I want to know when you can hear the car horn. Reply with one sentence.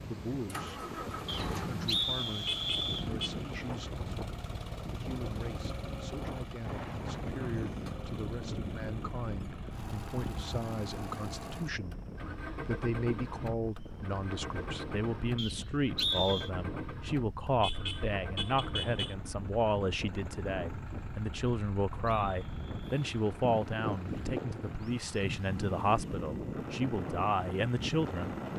The car horn can be heard from 2.5 to 3.4 s and from 17.6 to 19.1 s.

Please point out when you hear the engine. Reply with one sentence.
You can hear the engine from 0.0 to 28.5 s.